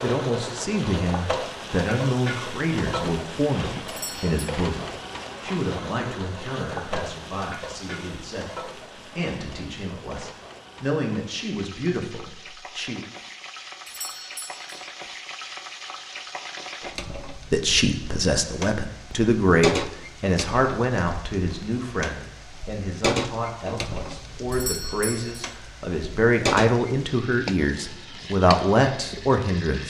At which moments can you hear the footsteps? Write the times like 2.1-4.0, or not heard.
not heard.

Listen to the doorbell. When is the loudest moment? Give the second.
25 s.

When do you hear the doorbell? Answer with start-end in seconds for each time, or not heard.
3.9-4.5, 13.8-14.7, 24.5-25.6.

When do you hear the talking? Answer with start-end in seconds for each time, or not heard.
0.0-13.1, 17.3-29.8.